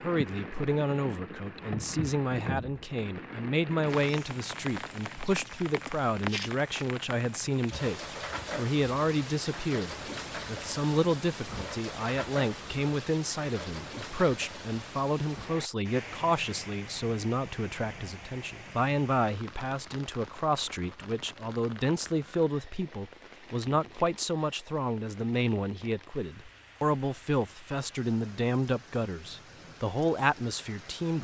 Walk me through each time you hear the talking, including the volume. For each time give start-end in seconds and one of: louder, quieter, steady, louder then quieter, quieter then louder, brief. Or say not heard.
0.0-31.1 steady.